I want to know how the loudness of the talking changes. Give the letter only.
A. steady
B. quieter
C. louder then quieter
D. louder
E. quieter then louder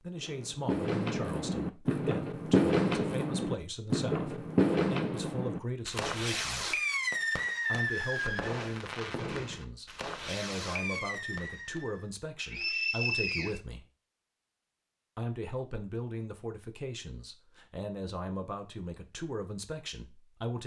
A.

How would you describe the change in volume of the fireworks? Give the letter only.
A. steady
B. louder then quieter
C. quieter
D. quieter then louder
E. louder
C.